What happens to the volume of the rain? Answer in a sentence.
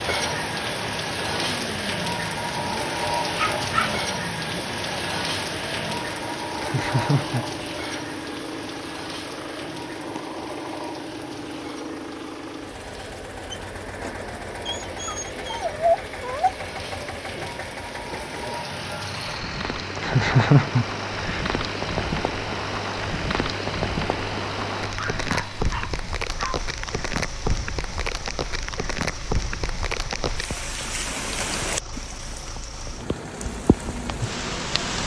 The volume of the rain goes down, then up.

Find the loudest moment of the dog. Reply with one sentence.
The loudest moment of the dog is at 16 seconds.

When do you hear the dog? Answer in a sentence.
You can hear the dog from 3.4 to 4.0 s, from 14.7 to 16.6 s and from 24.9 to 26.6 s.